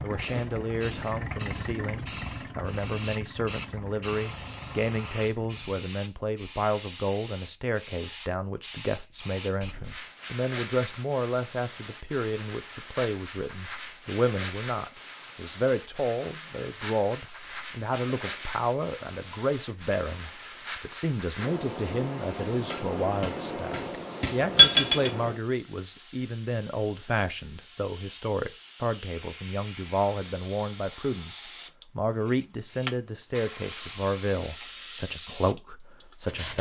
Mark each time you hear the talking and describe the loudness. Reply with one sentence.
You can hear the talking from 0.0 to 36.5 s, at a steady volume.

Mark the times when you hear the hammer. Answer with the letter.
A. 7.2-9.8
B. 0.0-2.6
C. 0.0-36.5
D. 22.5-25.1
D.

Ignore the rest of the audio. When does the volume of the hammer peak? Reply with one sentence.
The loudest moment of the hammer is at 25 seconds.